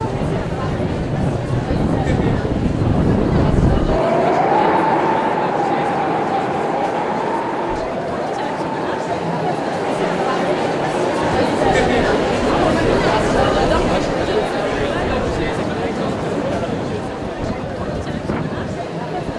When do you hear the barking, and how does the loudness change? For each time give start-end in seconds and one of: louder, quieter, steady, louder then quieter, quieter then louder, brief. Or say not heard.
not heard.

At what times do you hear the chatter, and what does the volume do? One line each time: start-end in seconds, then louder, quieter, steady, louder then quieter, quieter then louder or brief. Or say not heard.
0.0-19.3 louder then quieter.